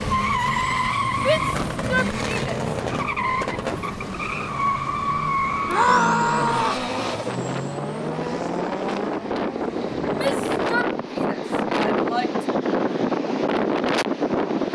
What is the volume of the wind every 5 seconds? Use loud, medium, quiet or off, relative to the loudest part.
quiet, medium, loud.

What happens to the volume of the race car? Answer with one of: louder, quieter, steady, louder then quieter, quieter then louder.
quieter.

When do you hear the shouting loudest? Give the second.
6 s.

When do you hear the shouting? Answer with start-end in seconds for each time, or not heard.
1.2-2.6, 5.7-6.8, 10.2-12.4.